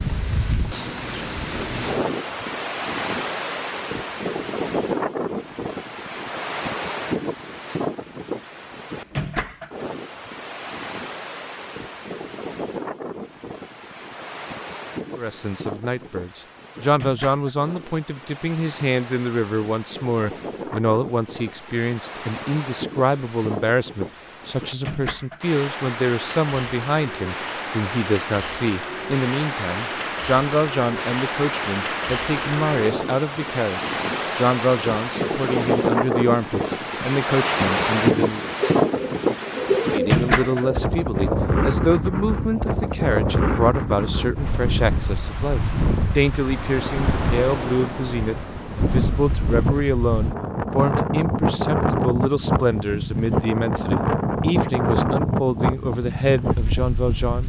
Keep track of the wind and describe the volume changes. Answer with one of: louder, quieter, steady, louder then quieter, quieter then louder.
quieter then louder.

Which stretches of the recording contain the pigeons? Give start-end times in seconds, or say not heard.
38.7-40.9.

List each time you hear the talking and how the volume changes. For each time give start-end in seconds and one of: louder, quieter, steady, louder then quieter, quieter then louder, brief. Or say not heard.
15.2-38.5 steady
39.9-57.4 steady.